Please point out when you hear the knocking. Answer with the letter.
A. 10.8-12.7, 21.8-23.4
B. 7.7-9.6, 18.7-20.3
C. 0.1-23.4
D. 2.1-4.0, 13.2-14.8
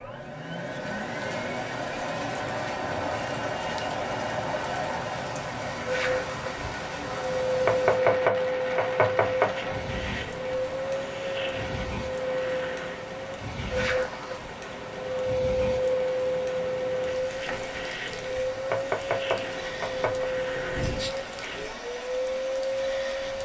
B.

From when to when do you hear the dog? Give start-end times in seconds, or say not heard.
not heard.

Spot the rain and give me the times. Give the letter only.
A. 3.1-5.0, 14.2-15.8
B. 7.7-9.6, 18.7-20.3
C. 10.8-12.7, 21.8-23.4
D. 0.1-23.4
D.